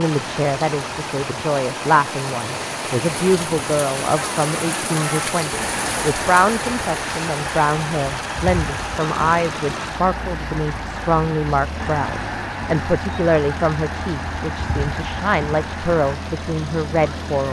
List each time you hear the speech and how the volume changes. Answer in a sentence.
You can hear the speech from 0.0 to 17.4 s, at a steady volume.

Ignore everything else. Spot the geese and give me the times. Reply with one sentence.
The geese can be heard from 4.2 to 16.1 s.